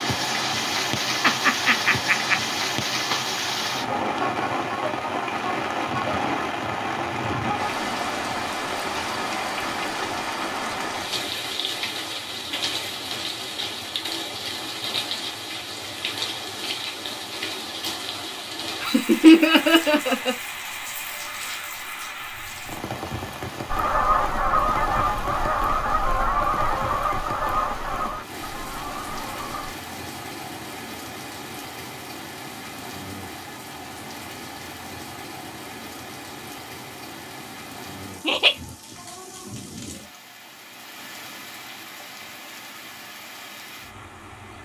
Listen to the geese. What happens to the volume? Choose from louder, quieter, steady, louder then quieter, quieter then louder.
quieter.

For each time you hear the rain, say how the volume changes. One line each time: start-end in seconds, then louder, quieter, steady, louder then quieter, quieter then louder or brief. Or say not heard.
0.0-44.6 quieter.